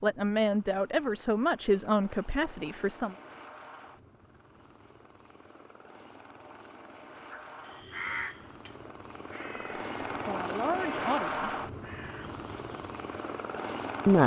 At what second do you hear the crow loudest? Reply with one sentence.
The volume of the crow peaks at 8 seconds.